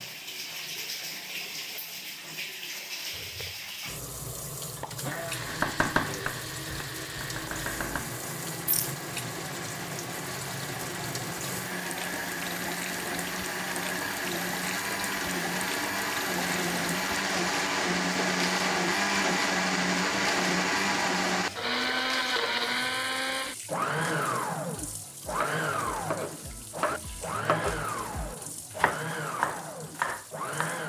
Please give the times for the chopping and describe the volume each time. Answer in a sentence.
You can hear the chopping briefly from 5.5 to 8.1 s; and from 24.8 to 30.8 s, getting louder.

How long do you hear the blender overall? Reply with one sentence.
You can hear the blender for 28 seconds altogether.